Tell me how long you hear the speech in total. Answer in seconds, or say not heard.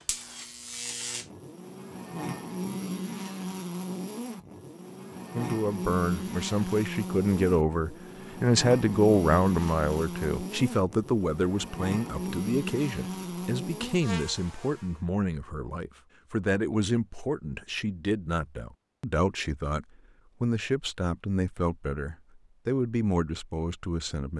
19 s.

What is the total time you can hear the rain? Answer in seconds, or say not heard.
not heard.